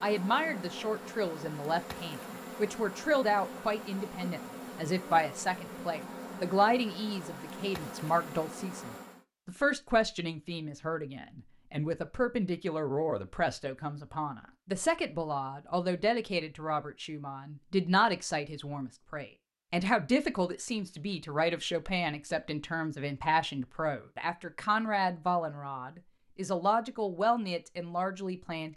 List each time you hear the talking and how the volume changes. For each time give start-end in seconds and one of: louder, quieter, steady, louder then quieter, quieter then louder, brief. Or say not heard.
0.0-28.7 steady.